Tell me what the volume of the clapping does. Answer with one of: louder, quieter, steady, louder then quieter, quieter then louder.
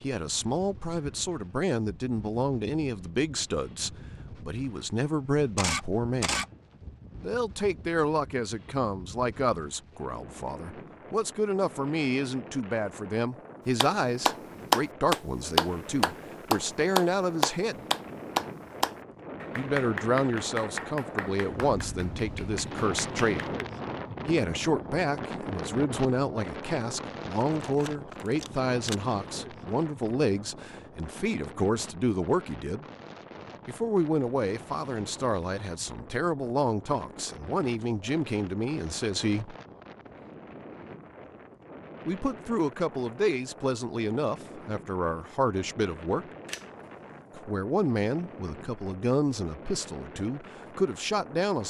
quieter.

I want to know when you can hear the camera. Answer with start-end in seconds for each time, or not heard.
5.5-6.5, 27.4-28.9, 46.5-47.2.